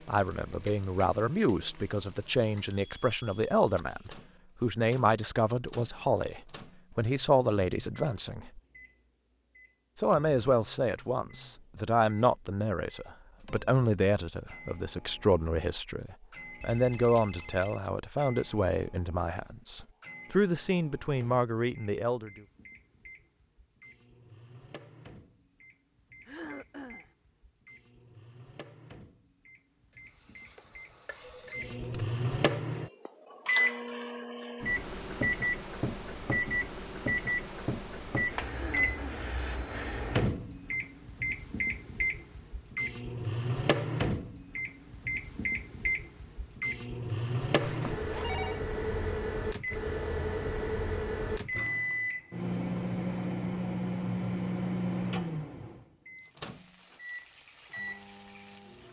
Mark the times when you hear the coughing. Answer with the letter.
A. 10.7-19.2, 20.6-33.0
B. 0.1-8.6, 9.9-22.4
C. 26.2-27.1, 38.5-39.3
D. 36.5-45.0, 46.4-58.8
C.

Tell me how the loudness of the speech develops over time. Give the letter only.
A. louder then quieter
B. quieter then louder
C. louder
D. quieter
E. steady
E.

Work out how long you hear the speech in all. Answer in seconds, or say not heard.
21 s.